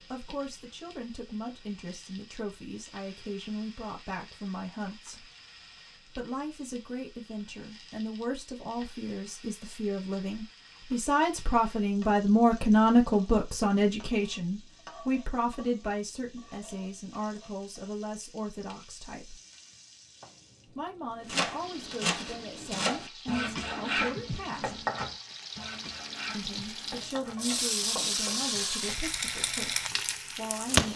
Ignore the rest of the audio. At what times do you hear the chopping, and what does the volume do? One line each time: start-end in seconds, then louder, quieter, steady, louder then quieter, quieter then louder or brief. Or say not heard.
21.2-28.8 quieter.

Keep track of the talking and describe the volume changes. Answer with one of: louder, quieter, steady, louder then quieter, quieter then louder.
louder then quieter.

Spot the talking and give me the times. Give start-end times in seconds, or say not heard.
0.1-5.3, 6.0-19.4, 20.7-24.8, 26.3-30.9.